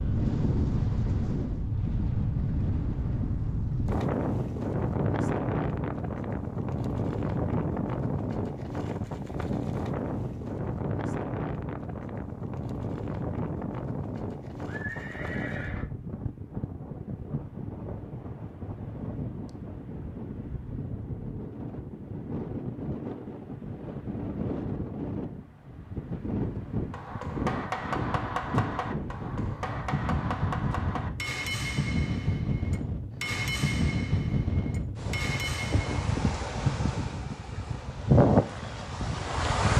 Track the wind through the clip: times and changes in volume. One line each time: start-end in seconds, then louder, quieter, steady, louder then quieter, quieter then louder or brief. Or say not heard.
0.0-39.7 quieter then louder.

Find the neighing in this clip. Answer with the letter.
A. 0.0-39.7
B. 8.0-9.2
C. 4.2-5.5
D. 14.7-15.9
D.